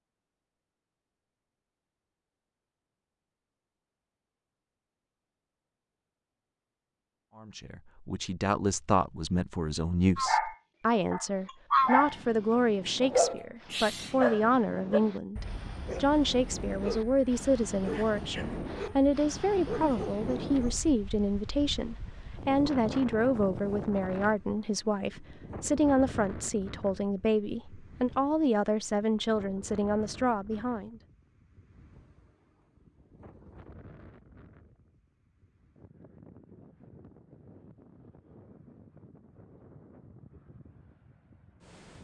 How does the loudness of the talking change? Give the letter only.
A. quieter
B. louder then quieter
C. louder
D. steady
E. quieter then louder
D.